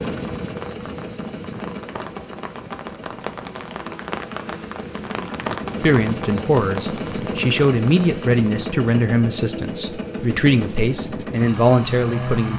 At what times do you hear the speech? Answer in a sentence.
The speech can be heard from 5.8 to 12.5 s.